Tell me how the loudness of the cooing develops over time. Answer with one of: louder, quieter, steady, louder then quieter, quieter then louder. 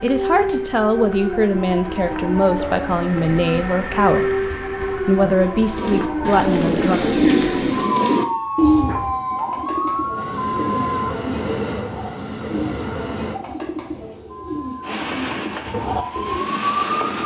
quieter.